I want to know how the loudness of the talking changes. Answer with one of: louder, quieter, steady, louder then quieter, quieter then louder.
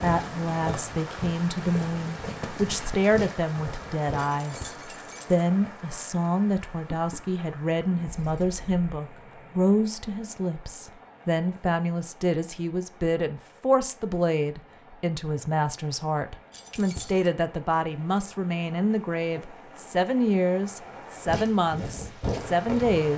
steady.